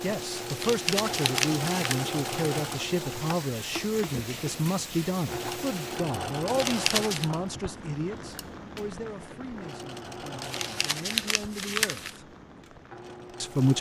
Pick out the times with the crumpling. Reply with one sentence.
You can hear the crumpling from 0.5 to 2.0 s, from 6.5 to 7.3 s and from 10.4 to 12.2 s.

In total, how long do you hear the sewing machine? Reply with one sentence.
You can hear the sewing machine for 14 seconds altogether.